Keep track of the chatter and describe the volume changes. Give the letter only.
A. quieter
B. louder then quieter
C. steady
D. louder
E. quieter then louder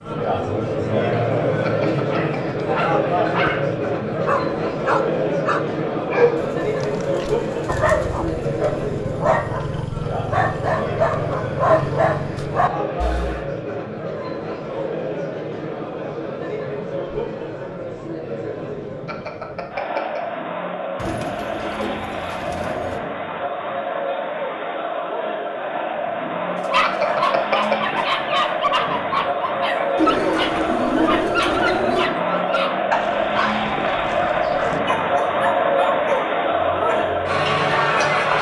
E.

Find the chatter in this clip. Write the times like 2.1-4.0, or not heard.
0.0-38.3.